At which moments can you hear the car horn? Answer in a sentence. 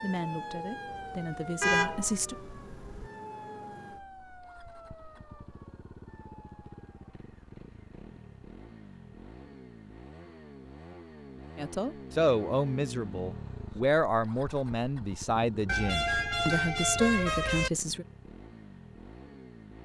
The car horn can be heard from 1.6 to 3.1 s and from 15.7 to 17.7 s.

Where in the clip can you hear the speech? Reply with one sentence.
The speech can be heard from 0.0 to 2.4 s and from 11.6 to 18.1 s.